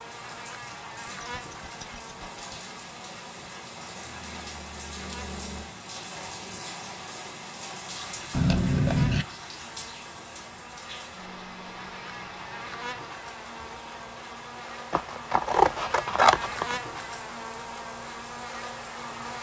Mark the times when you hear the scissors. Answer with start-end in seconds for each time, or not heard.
1.1-2.5, 8.3-9.2, 14.9-16.8.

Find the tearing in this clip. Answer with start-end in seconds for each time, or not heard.
not heard.